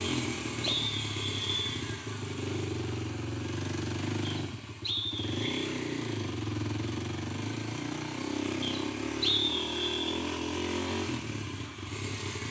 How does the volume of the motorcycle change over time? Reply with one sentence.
The volume of the motorcycle stays about the same.